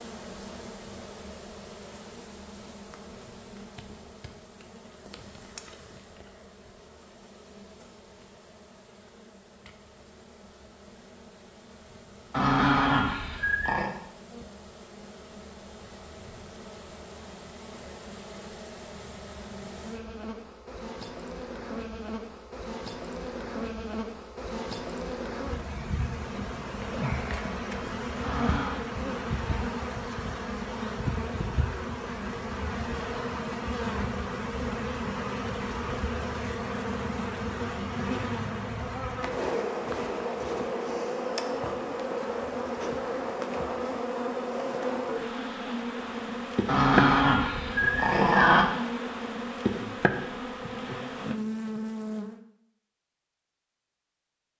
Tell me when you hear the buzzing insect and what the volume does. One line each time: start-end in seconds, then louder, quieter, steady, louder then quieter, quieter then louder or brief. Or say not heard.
0.0-52.4 louder.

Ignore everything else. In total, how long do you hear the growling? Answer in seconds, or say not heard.
4 s.